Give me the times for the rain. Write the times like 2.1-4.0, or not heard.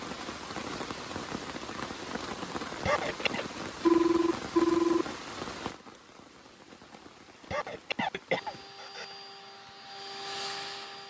0.0-8.8.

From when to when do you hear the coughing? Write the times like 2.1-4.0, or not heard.
2.8-3.4, 7.4-9.2.